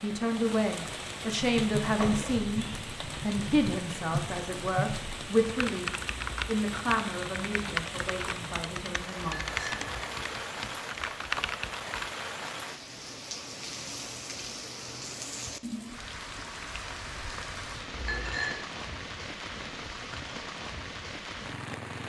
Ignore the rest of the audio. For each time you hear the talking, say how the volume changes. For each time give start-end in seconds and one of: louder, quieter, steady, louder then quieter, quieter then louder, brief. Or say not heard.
0.0-9.7 quieter.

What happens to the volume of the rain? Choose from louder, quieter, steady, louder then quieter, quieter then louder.
steady.